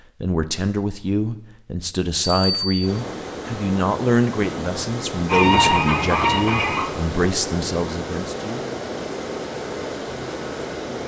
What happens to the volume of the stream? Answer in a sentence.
The loudness of the stream stays about the same.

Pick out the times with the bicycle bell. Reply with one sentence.
You can hear the bicycle bell from 2.2 to 2.9 s.